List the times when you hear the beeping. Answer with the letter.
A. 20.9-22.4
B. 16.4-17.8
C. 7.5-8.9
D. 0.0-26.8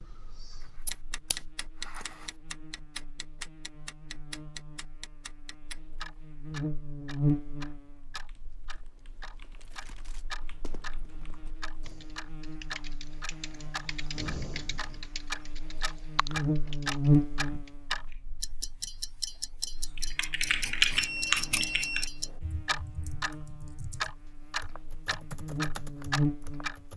A.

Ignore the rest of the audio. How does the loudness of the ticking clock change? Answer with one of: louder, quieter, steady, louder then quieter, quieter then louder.
louder.